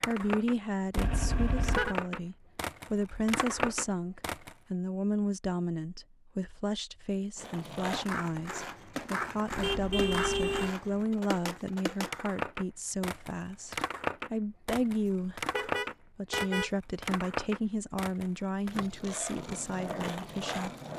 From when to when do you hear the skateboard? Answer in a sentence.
The skateboard can be heard from 0.0 to 4.5 s and from 7.3 to 20.9 s.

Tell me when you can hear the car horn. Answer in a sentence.
The car horn can be heard from 0.9 to 1.9 s, from 9.5 to 10.8 s and from 15.5 to 16.7 s.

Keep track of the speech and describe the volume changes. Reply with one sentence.
The volume of the speech stays about the same.